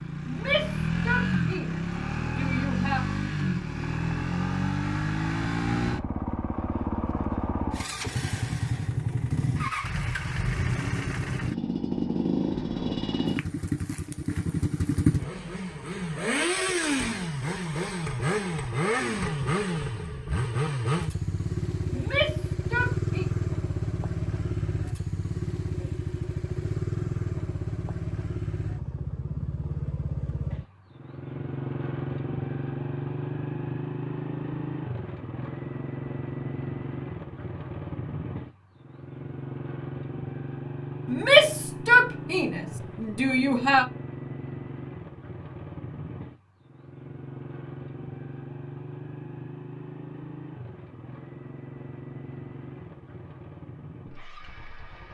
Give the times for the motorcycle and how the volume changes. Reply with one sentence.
You can hear the motorcycle from 0.0 to 55.0 s, getting quieter.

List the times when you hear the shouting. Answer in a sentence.
The shouting can be heard from 0.2 to 3.0 s, from 21.9 to 23.2 s and from 41.0 to 43.9 s.